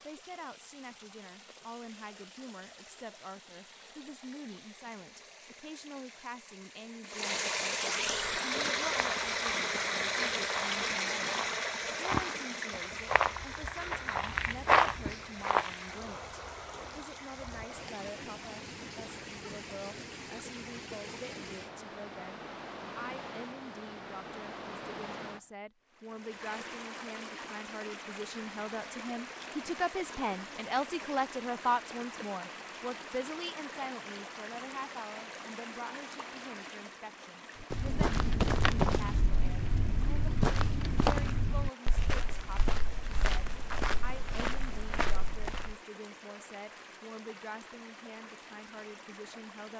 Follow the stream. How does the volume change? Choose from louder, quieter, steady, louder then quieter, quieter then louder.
quieter.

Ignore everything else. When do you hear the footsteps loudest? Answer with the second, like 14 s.
15 s.